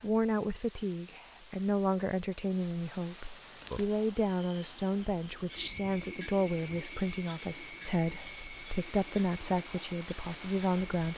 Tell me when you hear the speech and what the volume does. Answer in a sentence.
The speech can be heard from 0.0 to 11.1 s, at a steady volume.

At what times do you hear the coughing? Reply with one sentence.
The coughing can't be heard in this clip.